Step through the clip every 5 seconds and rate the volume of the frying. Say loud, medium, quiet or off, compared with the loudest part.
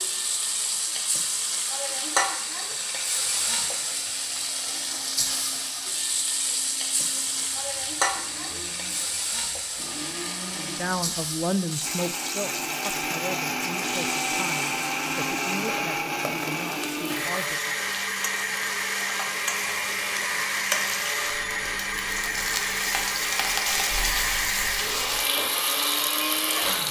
loud, loud, medium, medium, loud, loud.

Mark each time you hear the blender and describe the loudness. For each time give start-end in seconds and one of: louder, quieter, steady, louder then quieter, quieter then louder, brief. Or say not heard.
0.0-26.8 louder.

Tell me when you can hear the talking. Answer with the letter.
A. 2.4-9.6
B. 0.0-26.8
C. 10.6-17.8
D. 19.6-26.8
C.